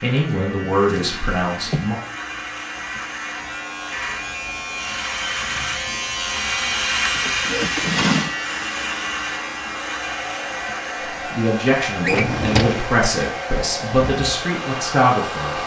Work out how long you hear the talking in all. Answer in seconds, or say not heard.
6 s.